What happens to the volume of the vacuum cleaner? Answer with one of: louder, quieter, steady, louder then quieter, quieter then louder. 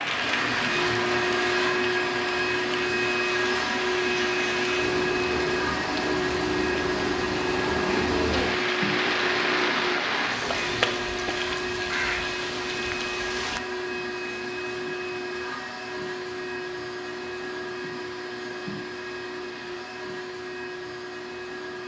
quieter.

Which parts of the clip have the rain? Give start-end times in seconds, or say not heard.
0.0-13.6.